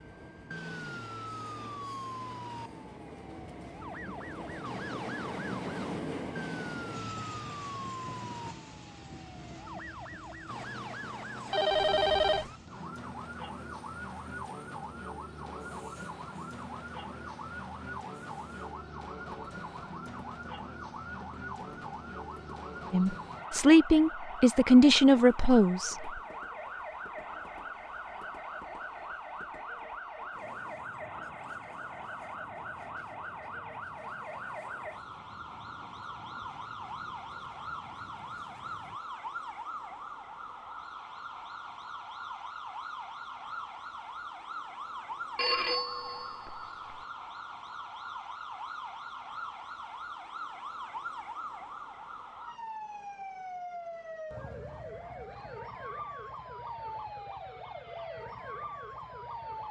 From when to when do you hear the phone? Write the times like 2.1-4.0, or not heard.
11.5-12.4, 45.4-47.0.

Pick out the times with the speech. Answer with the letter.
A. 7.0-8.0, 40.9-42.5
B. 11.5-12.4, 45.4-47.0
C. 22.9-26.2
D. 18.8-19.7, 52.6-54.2
C.